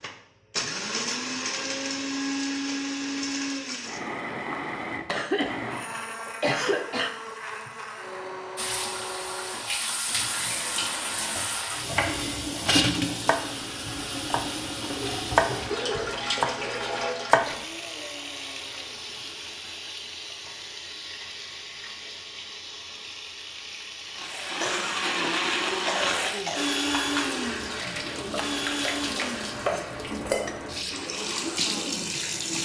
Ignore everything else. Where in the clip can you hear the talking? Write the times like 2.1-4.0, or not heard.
not heard.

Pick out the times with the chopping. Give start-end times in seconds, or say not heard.
11.1-17.6.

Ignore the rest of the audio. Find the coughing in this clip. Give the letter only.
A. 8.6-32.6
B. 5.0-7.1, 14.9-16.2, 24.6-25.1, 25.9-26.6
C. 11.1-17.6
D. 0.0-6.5
B.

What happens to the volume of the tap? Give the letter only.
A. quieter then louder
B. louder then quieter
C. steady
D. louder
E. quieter
A.